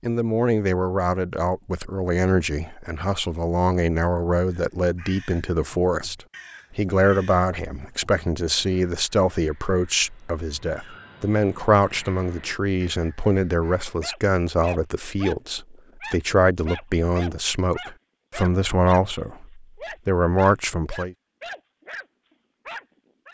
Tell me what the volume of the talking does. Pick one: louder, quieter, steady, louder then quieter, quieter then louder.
steady.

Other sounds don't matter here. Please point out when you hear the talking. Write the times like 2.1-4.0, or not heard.
0.0-6.2, 6.8-21.1.